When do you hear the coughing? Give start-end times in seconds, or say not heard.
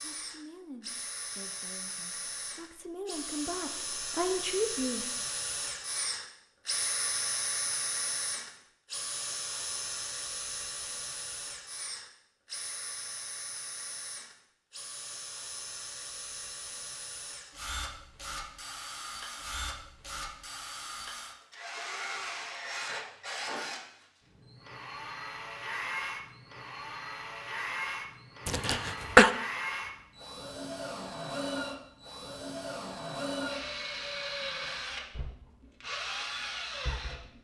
28.4-29.3.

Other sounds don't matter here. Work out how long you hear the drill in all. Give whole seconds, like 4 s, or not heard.
37 s.